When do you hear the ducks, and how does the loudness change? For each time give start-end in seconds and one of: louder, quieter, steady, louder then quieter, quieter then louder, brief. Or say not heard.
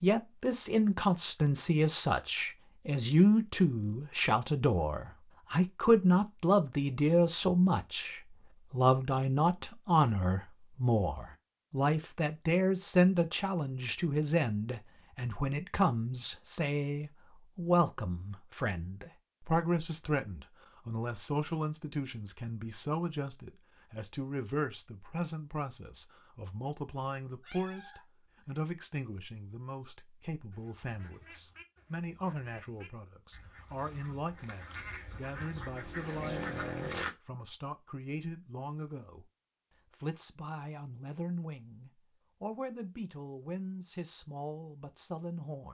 30.5-37.1 louder.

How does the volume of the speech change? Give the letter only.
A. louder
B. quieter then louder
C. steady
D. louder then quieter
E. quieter
E.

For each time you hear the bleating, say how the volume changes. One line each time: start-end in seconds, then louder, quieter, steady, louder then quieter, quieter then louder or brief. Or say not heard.
not heard.